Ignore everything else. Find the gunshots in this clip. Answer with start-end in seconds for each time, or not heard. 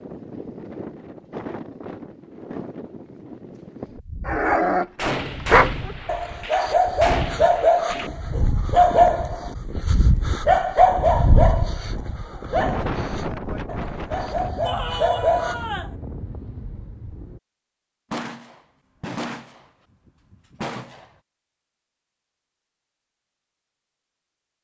5.0-8.1, 18.1-19.6, 20.3-21.1.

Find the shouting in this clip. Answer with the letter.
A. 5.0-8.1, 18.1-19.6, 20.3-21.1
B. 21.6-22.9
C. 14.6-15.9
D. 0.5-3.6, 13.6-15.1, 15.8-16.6
C.